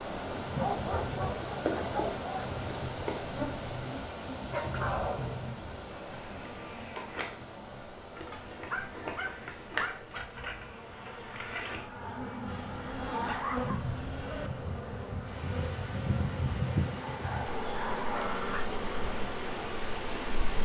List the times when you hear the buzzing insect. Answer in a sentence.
The buzzing insect can be heard from 0.1 to 20.6 s.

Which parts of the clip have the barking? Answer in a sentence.
The barking can be heard from 0.6 to 2.5 s, from 4.5 to 5.5 s, from 8.3 to 10.2 s, from 12.4 to 14.5 s and from 17.1 to 18.7 s.